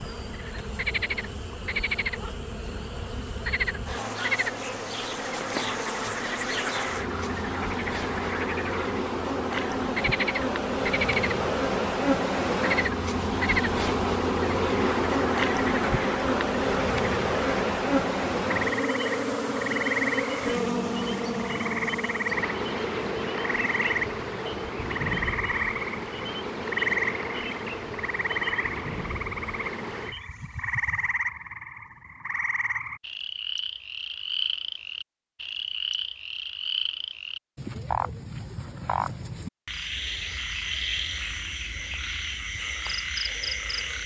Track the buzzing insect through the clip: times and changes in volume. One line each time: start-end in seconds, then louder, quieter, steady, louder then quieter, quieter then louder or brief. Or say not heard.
0.0-31.2 louder then quieter.